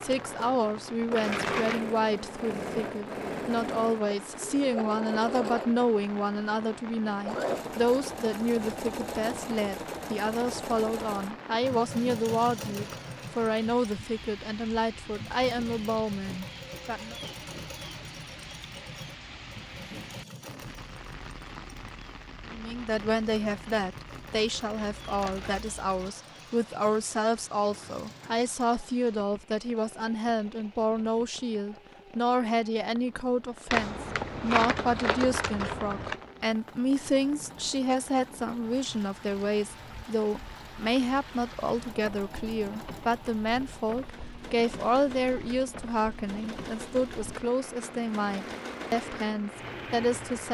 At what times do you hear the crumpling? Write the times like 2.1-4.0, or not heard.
1.1-1.8, 25.0-26.1, 33.7-36.1.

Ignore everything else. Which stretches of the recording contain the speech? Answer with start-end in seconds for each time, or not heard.
0.0-17.1, 22.4-50.4.